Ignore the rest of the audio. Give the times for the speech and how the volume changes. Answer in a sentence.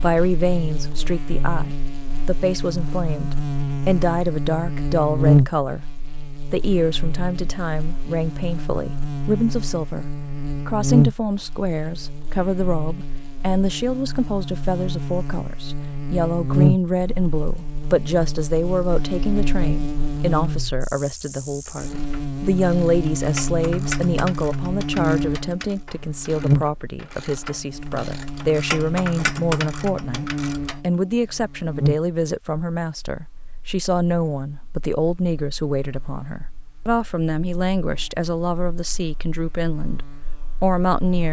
The speech can be heard from 0.0 to 41.2 s, at a steady volume.